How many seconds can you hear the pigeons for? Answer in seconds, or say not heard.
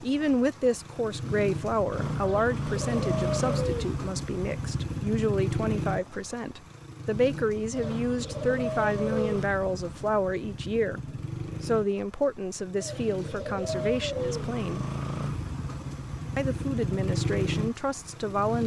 5 s.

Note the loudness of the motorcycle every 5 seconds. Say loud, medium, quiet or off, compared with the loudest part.
loud, loud, medium, loud.